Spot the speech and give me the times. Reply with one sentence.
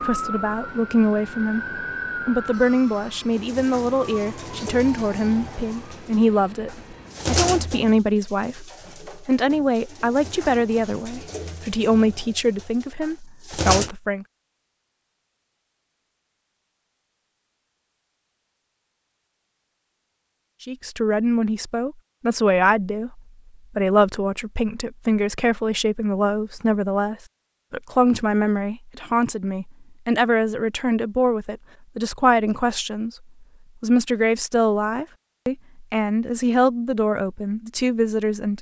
You can hear the speech from 0.0 to 1.6 s, from 2.2 to 14.2 s, from 20.6 to 33.1 s and from 33.8 to 38.5 s.